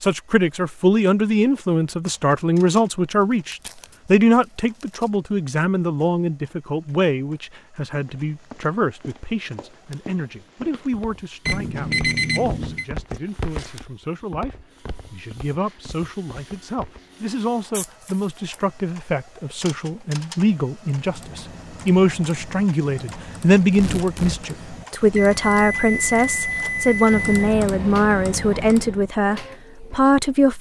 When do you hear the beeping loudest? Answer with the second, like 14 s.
12 s.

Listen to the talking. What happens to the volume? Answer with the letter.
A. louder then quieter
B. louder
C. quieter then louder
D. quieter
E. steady
C.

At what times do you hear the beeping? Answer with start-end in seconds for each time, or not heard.
11.4-12.8, 25.1-27.3.